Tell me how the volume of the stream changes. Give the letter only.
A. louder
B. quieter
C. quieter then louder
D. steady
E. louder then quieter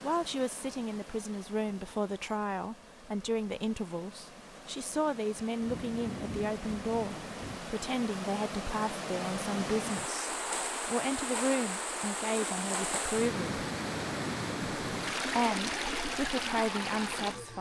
A.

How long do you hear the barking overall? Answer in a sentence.
The barking can't be heard in this clip.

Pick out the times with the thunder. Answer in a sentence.
You can hear the thunder from 5.6 to 7.6 s.